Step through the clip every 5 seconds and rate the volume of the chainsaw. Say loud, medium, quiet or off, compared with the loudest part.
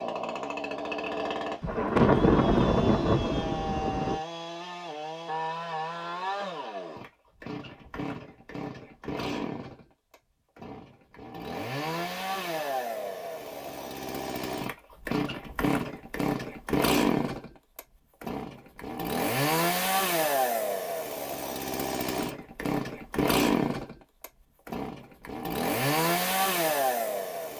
medium, medium, medium, loud, loud, loud.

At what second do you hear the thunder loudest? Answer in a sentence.
The loudest moment of the thunder is at 2 seconds.